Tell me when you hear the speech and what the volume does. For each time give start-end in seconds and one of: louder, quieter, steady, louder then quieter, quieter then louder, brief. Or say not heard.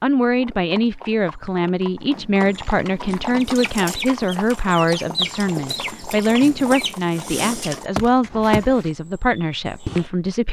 0.0-10.4 steady.